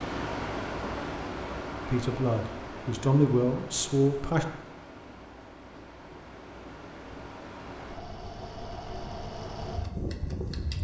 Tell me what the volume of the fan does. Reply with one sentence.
The loudness of the fan goes down, then up.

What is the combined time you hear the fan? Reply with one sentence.
The fan can be heard for 11 seconds in total.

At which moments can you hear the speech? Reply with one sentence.
You can hear the speech from 1.9 to 4.5 s.